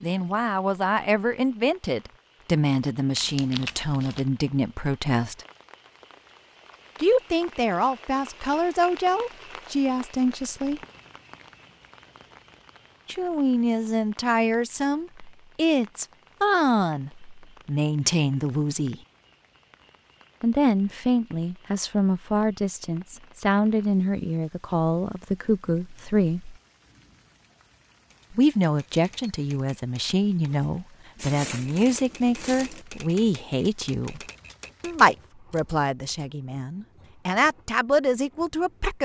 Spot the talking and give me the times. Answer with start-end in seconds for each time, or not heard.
0.0-5.5, 7.0-10.8, 13.1-18.9, 20.4-26.6, 28.3-34.2, 34.8-39.0.